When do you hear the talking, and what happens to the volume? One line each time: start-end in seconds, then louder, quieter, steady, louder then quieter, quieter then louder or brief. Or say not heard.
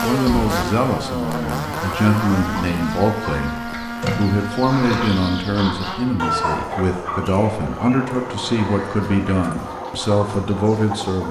0.0-11.2 steady.